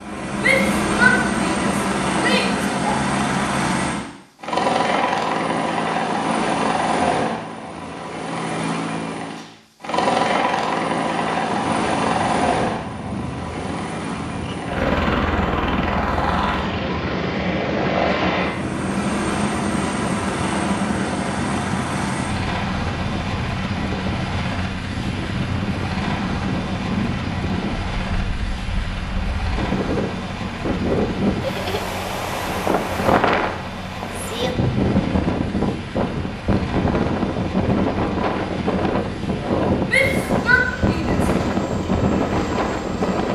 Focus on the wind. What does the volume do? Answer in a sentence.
The loudness of the wind goes up.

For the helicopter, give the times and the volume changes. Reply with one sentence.
You can hear the helicopter from 0.0 to 43.3 s, getting quieter.